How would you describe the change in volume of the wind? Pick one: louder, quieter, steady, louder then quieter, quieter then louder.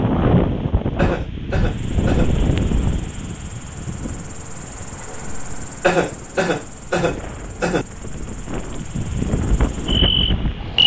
quieter then louder.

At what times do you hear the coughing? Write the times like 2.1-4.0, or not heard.
0.9-2.4, 5.8-7.8.